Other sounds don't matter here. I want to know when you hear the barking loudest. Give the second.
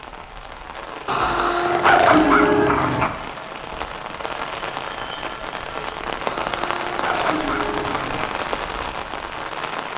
2 s.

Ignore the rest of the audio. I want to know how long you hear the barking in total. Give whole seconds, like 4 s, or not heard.
4 s.